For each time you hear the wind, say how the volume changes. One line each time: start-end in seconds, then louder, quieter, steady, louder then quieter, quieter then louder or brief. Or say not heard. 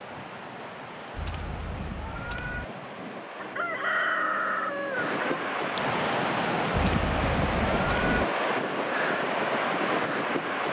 0.0-10.6 louder.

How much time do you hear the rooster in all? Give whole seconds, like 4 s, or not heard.
2 s.